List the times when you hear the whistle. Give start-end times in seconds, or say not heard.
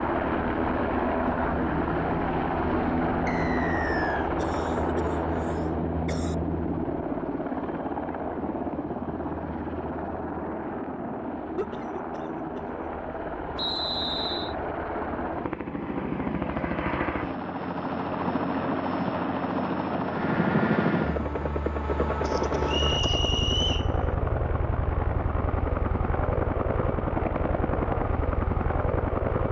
3.2-4.3, 13.6-14.6, 22.6-23.9.